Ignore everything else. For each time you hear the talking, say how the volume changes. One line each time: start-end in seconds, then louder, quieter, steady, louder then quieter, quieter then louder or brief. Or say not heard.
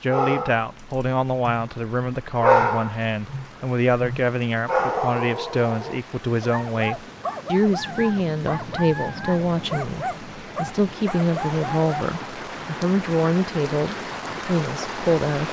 0.0-15.4 steady.